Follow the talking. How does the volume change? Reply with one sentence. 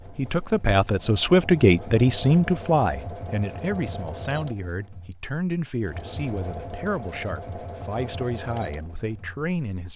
The loudness of the talking goes down.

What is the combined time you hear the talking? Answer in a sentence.
You can hear the talking for 10 seconds altogether.